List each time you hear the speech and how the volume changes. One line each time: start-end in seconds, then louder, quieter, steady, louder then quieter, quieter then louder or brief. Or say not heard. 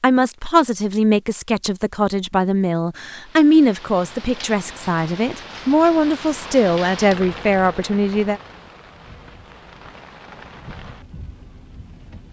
0.0-8.4 steady.